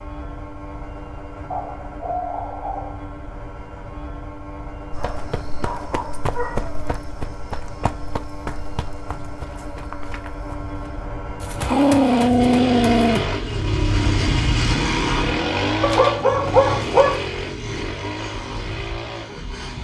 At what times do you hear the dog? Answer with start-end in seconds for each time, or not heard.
1.5-3.1, 5.0-7.0, 11.7-13.2, 15.8-17.2.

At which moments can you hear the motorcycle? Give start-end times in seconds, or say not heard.
0.0-19.7.